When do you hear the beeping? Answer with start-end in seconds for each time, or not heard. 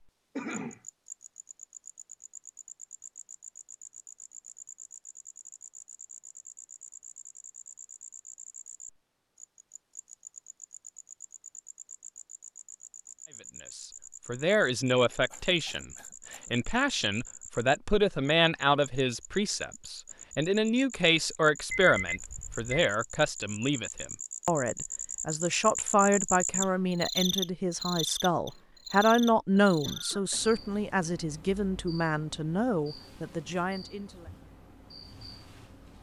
21.7-22.8.